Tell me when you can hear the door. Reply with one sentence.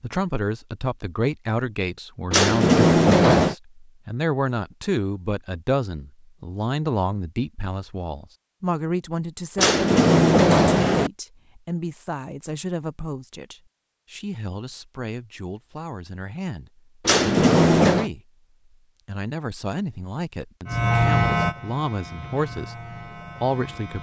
You can hear the door from 2.3 to 3.5 s, from 9.6 to 11.1 s and from 17.1 to 18.1 s.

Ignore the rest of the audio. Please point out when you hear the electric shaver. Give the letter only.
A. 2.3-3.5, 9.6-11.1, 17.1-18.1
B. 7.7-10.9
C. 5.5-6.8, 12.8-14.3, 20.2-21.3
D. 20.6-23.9
D.